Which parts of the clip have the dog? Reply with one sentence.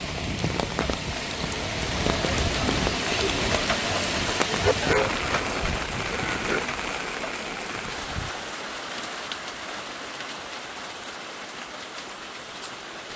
You can hear the dog from 4.5 to 6.7 s.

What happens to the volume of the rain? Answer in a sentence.
The volume of the rain goes down.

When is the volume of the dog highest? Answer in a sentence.
The volume of the dog peaks at 5 seconds.